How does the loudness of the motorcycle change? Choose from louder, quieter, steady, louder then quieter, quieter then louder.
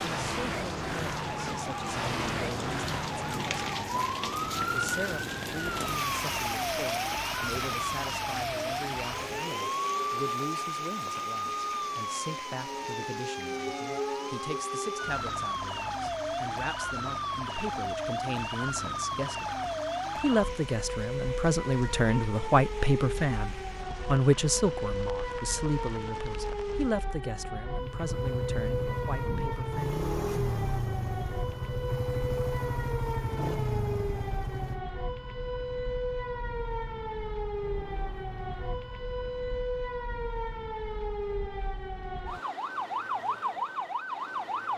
quieter.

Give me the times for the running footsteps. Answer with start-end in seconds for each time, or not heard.
not heard.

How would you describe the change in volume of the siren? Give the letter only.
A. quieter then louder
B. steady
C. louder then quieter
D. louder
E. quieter
B.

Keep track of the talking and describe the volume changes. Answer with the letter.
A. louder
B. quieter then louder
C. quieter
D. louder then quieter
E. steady
D.